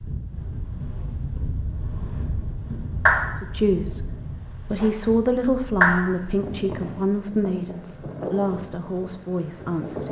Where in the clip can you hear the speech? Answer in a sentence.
The speech can be heard from 3.4 to 10.0 s.